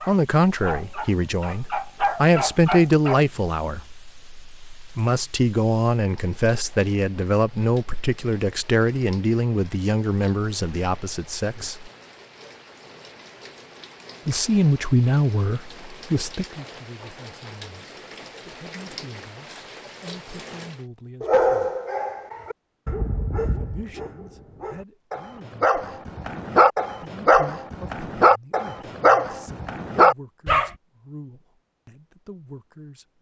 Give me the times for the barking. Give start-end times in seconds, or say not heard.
0.0-3.2, 21.2-30.7.